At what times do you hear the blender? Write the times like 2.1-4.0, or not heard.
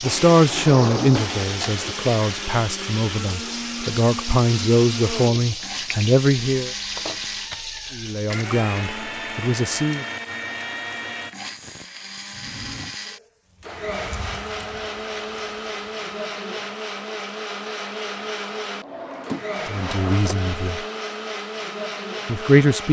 0.0-22.8.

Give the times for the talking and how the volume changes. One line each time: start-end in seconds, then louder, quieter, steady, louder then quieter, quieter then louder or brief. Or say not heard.
0.0-6.7 quieter then louder
7.9-10.1 brief
19.6-20.9 brief
22.2-22.8 brief.